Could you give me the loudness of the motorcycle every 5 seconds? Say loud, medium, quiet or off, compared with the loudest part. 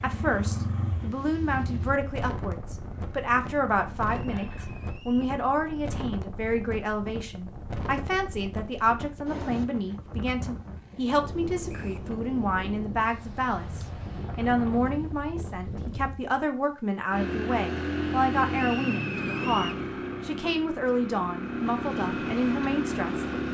medium, off, off, loud, loud.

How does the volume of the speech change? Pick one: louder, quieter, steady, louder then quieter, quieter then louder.
steady.